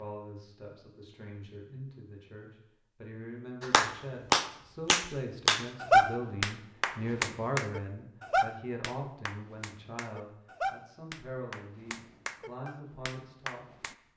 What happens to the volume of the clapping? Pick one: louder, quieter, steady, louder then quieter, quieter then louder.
quieter.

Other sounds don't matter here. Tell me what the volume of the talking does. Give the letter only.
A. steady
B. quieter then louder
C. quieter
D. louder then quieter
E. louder
D.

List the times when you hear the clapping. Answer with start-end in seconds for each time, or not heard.
3.6-13.9.